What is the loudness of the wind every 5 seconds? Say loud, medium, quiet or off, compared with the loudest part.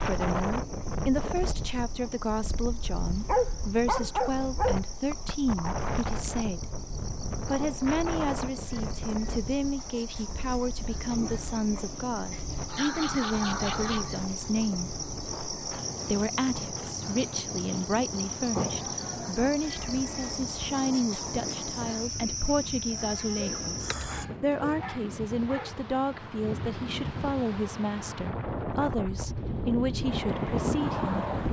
medium, medium, quiet, quiet, quiet, medium, loud.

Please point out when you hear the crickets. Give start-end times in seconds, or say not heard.
0.0-24.2.